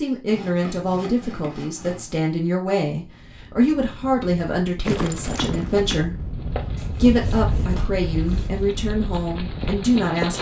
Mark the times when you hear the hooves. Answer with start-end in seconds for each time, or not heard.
4.8-10.3.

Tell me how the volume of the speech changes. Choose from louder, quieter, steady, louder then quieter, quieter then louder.
steady.